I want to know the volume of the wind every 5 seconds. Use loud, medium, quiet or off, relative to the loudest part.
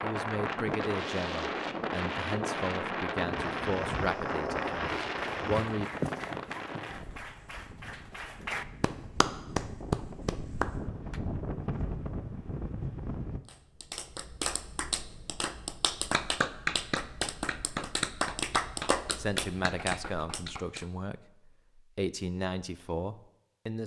loud, medium, medium, off, off.